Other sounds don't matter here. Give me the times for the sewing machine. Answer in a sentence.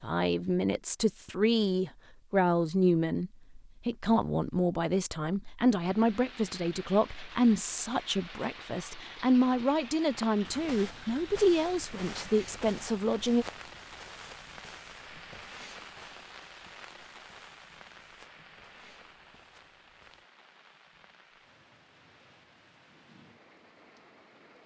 The sewing machine can't be heard in this clip.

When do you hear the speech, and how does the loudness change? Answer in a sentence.
The speech can be heard from 0.0 to 13.4 s, at a steady volume.